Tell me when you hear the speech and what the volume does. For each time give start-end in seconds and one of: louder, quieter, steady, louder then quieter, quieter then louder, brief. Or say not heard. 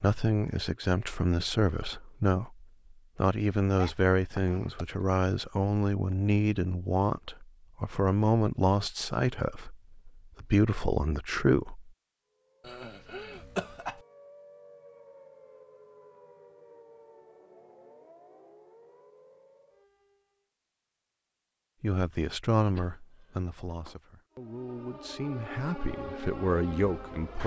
0.0-11.9 steady
21.8-27.4 quieter then louder.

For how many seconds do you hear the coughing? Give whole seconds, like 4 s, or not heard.
4 s.